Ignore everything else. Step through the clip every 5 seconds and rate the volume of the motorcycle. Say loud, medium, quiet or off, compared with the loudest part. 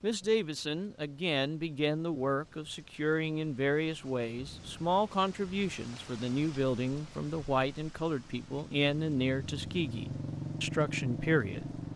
off, medium, loud.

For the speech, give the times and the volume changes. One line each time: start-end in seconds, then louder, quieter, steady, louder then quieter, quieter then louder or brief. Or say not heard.
0.0-11.8 steady.